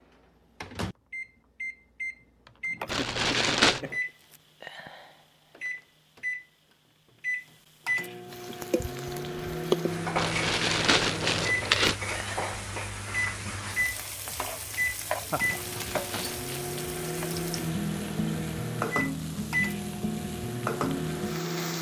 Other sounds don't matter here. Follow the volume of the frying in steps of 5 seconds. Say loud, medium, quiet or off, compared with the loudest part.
off, loud, loud, loud, loud.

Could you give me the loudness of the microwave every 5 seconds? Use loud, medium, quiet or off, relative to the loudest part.
medium, loud, loud, loud, loud.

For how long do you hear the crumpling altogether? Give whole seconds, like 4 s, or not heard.
4 s.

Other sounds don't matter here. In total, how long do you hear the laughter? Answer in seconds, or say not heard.
2 s.